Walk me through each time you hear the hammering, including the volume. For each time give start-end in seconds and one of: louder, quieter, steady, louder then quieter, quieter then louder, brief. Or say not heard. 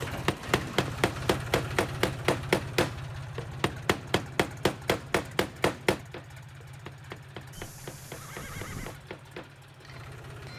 0.0-10.5 quieter.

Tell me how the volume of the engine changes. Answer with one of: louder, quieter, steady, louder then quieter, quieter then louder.
quieter.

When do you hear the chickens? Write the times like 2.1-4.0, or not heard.
not heard.